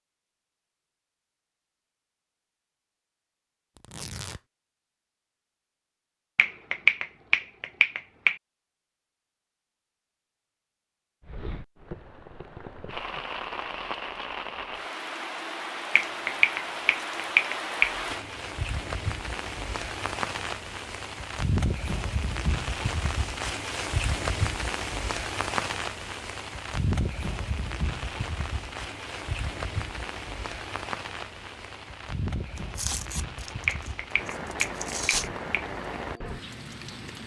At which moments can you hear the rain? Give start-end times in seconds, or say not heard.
11.2-37.2.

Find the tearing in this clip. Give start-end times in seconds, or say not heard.
3.8-4.4, 32.5-35.3.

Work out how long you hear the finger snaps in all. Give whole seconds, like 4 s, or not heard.
6 s.